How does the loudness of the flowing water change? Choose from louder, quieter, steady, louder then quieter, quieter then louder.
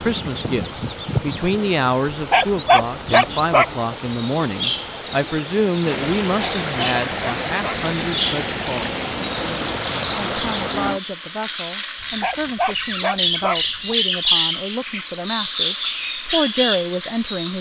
louder.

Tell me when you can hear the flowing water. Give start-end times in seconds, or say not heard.
0.0-11.0.